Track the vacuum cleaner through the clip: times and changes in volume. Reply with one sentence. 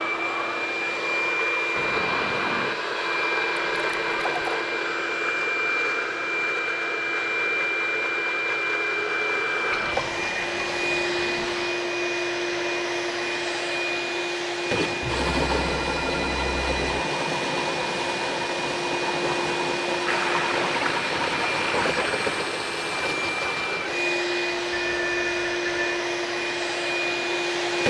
The vacuum cleaner can be heard from 0.0 to 27.8 s, at a steady volume.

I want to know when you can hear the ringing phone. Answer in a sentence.
The ringing phone can be heard from 1.8 to 2.8 s, from 15.0 to 16.8 s and from 24.7 to 26.0 s.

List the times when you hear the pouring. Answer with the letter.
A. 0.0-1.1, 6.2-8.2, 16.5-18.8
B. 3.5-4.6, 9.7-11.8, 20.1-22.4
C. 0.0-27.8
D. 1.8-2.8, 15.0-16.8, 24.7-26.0
B.